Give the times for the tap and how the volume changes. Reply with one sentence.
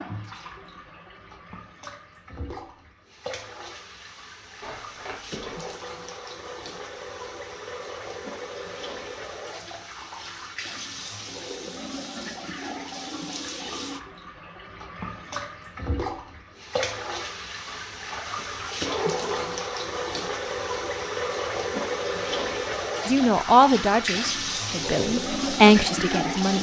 You can hear the tap from 0.0 to 26.5 s, getting louder.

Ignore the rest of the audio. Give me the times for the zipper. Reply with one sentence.
The zipper can be heard from 4.6 to 5.8 s and from 17.6 to 19.5 s.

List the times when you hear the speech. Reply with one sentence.
The speech can be heard from 23.1 to 26.5 s.